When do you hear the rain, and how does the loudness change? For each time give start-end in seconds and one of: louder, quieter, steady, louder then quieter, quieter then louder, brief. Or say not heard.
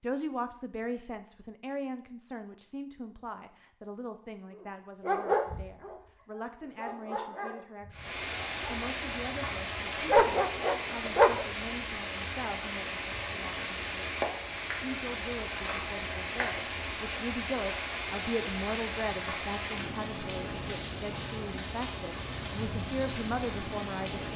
7.9-24.3 steady.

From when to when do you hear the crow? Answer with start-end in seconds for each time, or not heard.
not heard.